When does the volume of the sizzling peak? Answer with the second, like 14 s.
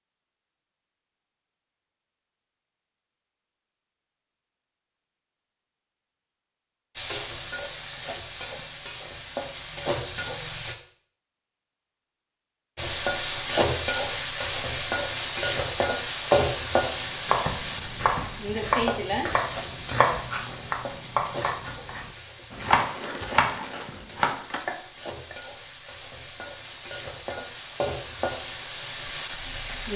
16 s.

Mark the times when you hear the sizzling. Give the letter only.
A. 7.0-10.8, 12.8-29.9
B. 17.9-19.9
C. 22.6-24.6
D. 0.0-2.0
A.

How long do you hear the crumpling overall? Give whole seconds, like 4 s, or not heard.
2 s.